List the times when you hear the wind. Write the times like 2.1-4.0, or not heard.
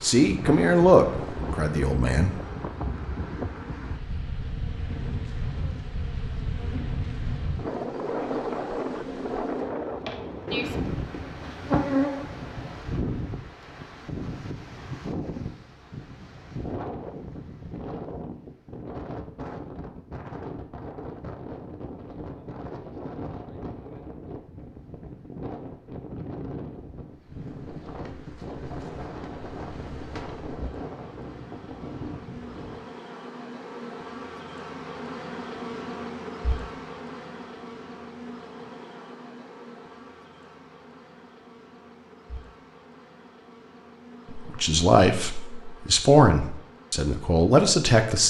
0.2-32.9.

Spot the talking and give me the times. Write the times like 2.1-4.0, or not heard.
0.0-2.4, 44.3-48.2.